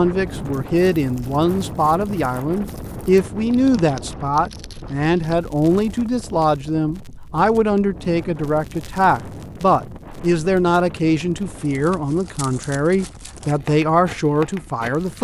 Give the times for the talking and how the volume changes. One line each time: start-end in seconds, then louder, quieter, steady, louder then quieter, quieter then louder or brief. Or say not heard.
0.0-15.1 steady.